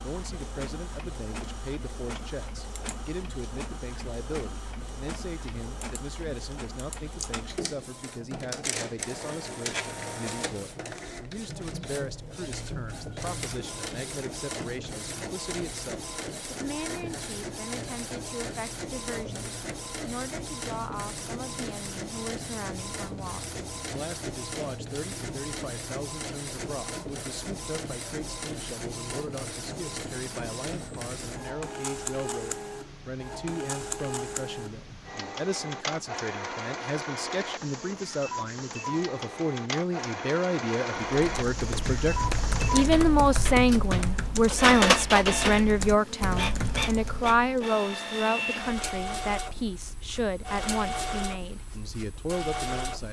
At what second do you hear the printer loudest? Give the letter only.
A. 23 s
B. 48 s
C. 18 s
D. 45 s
D.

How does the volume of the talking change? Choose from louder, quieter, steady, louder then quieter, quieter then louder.
louder.